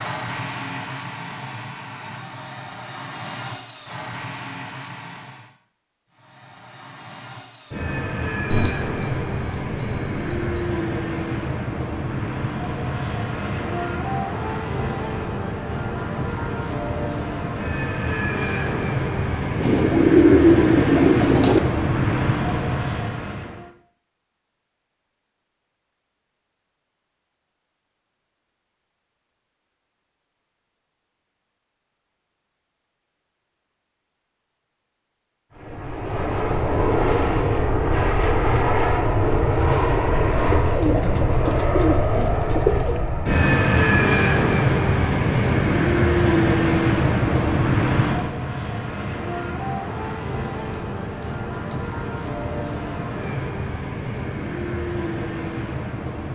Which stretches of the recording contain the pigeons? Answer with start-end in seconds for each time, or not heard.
19.6-21.6, 40.2-43.0.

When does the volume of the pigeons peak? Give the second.
20 s.